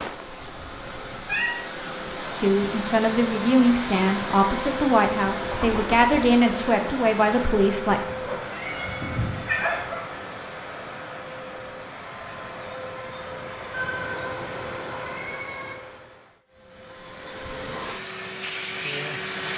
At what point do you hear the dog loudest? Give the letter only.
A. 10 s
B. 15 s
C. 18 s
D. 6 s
A.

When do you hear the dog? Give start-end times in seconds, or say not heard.
8.1-10.1.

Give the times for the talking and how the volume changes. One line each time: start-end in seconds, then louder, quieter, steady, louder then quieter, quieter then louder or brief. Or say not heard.
2.4-8.0 steady.